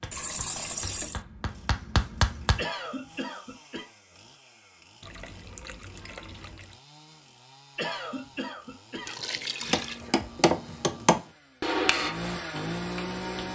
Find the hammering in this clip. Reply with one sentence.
The hammering can be heard from 0.0 to 2.6 s and from 9.7 to 13.4 s.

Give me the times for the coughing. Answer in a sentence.
The coughing can be heard from 2.5 to 3.9 s and from 7.8 to 9.4 s.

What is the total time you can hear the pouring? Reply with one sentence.
You can hear the pouring for 4 seconds altogether.